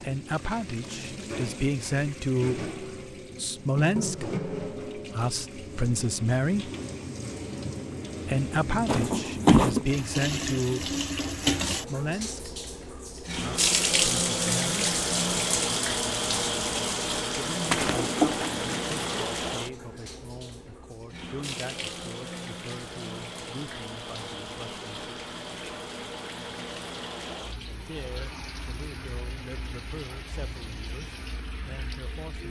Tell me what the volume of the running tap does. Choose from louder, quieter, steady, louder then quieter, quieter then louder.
louder then quieter.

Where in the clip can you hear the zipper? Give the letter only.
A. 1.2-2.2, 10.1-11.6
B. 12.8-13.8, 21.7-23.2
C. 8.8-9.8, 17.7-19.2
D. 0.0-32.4
C.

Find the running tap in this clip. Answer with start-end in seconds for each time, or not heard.
0.0-32.4.